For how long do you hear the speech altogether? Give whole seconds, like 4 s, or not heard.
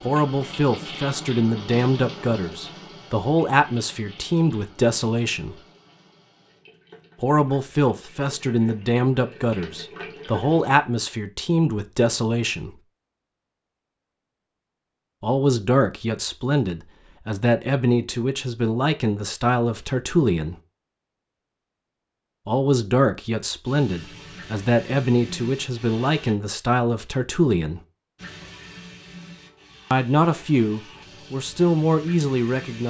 25 s.